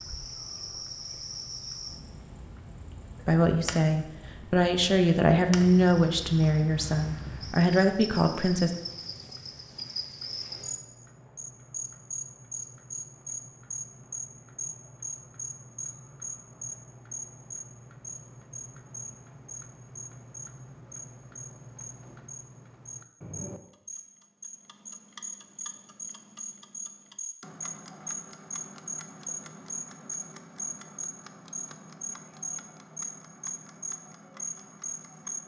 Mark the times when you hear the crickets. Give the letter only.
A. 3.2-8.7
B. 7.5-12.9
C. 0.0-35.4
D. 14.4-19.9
C.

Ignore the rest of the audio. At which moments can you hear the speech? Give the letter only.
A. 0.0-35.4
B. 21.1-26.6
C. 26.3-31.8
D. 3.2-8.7
D.